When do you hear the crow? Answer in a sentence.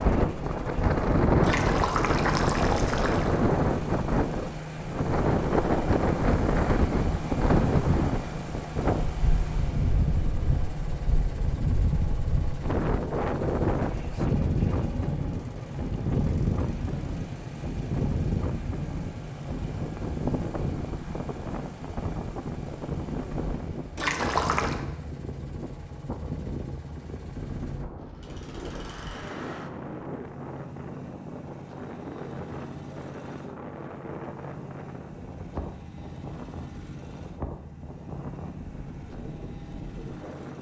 You can't hear the crow here.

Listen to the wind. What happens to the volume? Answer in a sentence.
The loudness of the wind goes down.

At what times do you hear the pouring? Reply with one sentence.
You can hear the pouring from 1.4 to 3.4 s and from 23.9 to 24.9 s.